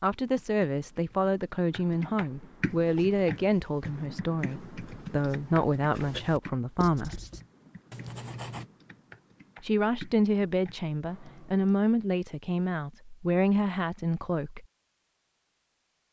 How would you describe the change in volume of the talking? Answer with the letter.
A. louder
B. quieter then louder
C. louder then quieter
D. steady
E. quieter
D.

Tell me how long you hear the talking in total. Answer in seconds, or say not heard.
12 s.